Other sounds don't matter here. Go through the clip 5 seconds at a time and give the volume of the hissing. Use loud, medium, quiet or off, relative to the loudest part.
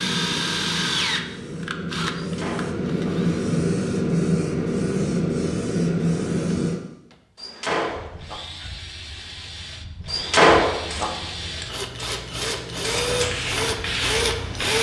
loud, loud, medium.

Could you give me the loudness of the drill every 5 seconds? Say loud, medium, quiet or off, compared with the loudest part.
loud, quiet, loud.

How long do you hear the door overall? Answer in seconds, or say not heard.
3 s.